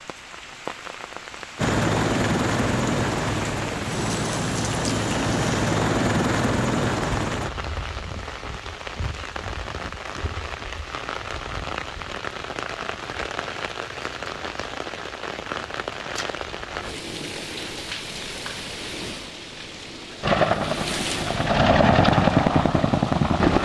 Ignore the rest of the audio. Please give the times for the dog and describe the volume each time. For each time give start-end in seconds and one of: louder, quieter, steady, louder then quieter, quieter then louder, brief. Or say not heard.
not heard.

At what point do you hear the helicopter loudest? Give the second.
22 s.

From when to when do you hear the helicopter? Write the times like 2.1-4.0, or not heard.
1.6-7.5, 20.2-23.6.